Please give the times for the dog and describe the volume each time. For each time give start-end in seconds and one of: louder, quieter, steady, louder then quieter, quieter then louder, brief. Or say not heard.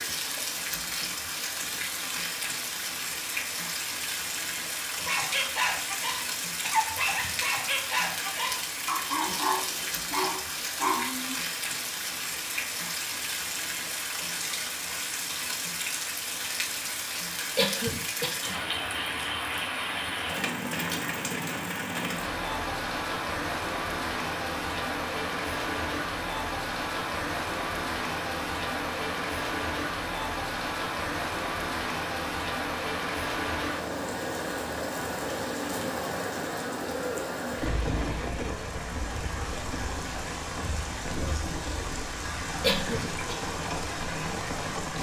5.0-11.3 steady.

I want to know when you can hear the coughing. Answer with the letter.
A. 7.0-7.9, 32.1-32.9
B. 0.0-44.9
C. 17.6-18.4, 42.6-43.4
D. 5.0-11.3
C.